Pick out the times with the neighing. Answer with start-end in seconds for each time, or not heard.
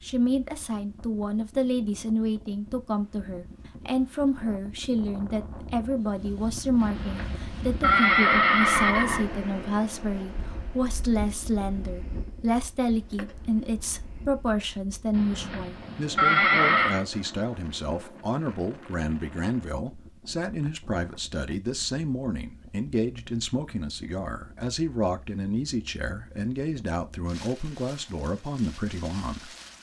6.8-9.2, 15.1-17.1.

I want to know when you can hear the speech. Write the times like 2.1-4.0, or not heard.
0.0-29.5.